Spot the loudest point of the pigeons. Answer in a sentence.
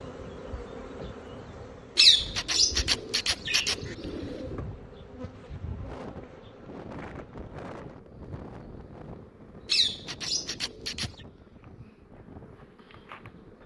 The volume of the pigeons peaks at 2 seconds.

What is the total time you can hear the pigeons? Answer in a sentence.
The pigeons can be heard for 4 seconds in total.